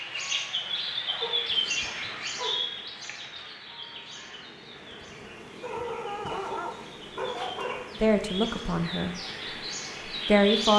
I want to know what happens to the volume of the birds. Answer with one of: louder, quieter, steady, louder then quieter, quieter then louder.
quieter then louder.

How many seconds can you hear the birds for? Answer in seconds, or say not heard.
11 s.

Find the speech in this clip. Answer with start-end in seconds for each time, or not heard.
8.0-9.2, 10.2-10.7.